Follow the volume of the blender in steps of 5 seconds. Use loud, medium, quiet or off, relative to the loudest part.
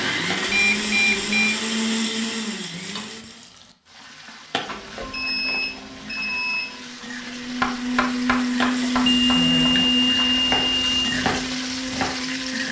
loud, loud, medium.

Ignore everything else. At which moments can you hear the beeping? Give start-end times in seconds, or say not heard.
0.5-1.6, 4.7-6.8, 9.1-11.2.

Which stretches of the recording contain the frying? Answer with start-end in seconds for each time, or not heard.
2.8-12.6.